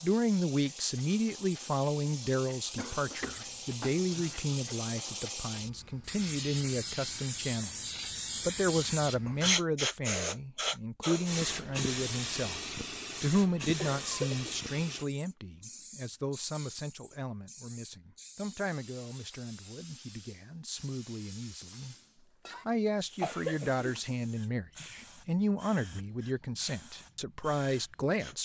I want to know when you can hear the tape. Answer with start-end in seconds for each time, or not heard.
not heard.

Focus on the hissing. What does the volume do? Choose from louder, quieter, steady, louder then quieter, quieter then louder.
louder then quieter.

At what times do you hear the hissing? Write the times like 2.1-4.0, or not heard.
0.0-28.4.